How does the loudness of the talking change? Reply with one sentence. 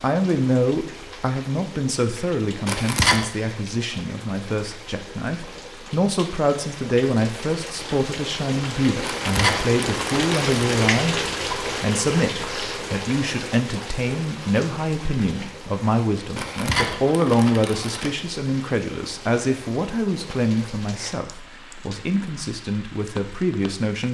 The loudness of the talking stays about the same.